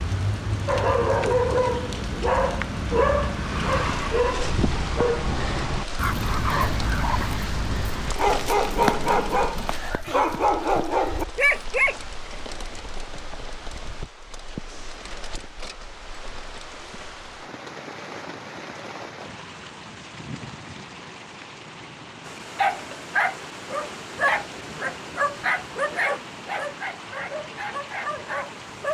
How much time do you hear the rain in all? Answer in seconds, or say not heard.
29 s.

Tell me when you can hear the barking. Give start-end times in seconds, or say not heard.
0.7-11.9, 22.2-28.8.